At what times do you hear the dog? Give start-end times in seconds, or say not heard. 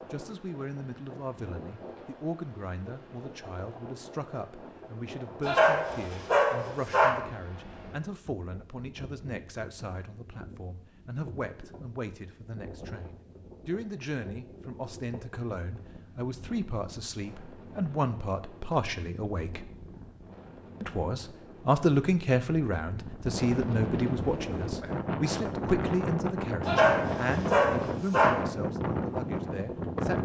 5.4-7.1, 26.6-28.3.